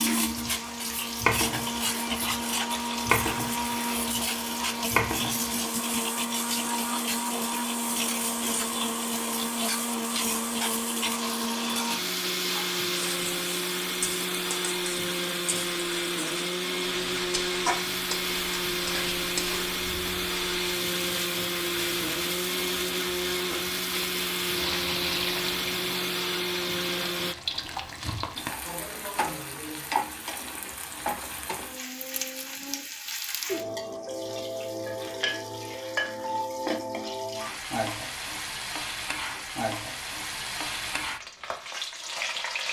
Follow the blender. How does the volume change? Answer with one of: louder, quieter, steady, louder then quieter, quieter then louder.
steady.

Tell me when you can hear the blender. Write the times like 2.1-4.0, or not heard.
0.0-27.4.